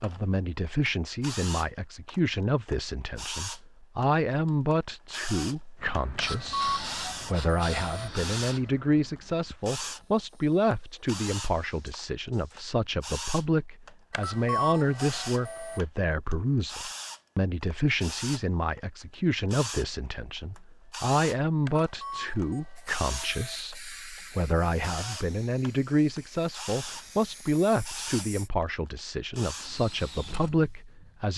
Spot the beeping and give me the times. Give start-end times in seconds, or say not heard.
6.2-8.1, 14.1-15.8, 21.6-23.6.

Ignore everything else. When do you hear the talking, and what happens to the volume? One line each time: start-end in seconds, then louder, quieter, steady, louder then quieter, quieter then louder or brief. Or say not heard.
0.0-31.3 steady.